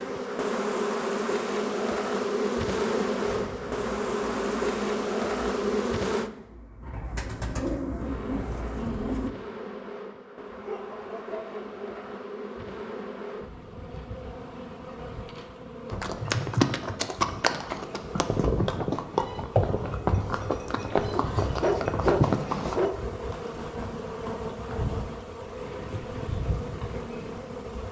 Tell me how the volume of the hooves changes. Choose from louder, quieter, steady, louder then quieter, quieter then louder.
quieter.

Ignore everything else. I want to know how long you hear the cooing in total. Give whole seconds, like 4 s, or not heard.
6 s.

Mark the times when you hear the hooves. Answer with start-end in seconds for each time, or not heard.
15.9-27.4.